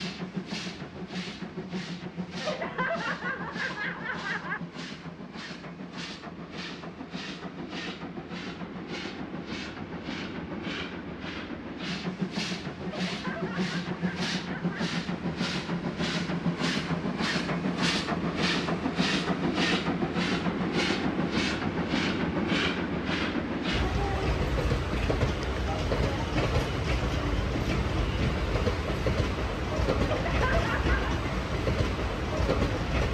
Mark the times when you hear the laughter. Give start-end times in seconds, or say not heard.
2.4-4.6, 12.8-14.8, 30.0-31.2.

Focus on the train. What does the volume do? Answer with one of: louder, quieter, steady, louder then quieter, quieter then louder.
louder.